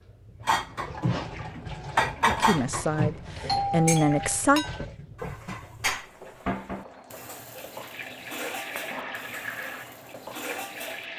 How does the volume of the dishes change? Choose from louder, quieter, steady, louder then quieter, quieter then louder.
quieter.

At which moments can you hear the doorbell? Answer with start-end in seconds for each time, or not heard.
3.5-4.4.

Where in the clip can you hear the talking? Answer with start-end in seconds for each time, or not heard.
2.2-4.7.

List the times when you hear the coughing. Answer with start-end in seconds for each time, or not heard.
not heard.